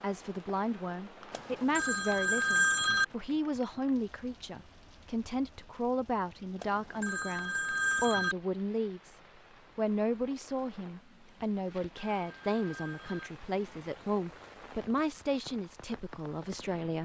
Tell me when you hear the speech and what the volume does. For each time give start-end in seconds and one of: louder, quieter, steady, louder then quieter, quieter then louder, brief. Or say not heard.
0.0-17.0 steady.